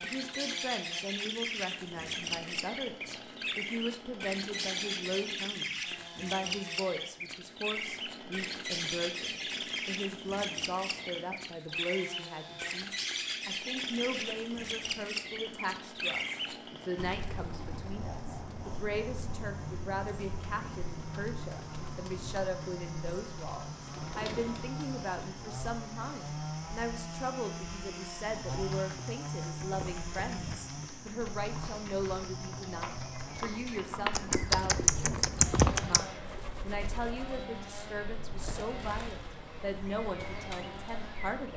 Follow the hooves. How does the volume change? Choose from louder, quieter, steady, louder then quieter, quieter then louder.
louder.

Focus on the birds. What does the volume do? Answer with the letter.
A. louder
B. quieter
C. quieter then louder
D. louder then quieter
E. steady
B.